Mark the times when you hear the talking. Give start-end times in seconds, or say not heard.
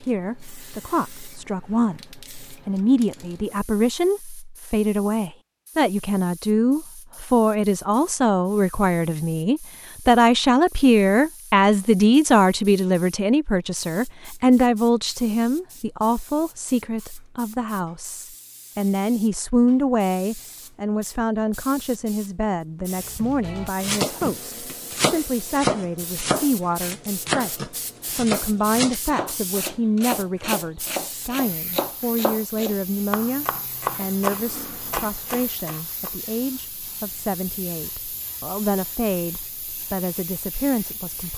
0.0-41.3.